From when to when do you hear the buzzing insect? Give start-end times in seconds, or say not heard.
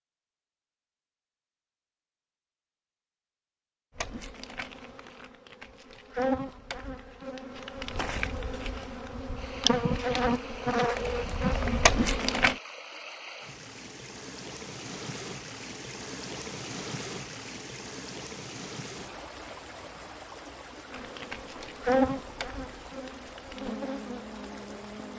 4.0-12.6, 20.9-25.1.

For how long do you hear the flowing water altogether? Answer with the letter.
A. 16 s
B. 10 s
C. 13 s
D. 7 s
A.